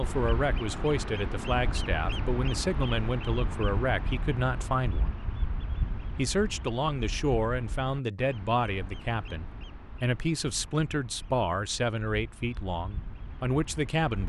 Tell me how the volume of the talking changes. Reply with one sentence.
The loudness of the talking stays about the same.